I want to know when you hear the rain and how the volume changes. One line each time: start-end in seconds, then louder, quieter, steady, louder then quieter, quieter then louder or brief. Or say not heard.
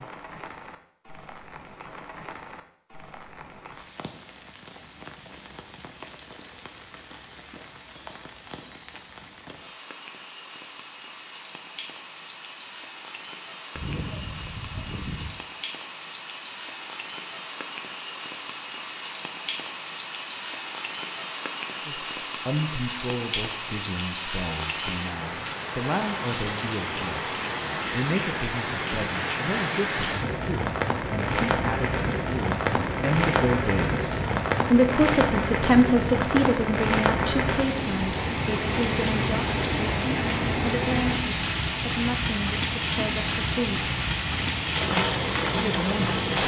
0.0-46.4 louder.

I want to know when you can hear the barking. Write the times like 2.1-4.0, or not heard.
13.8-15.3.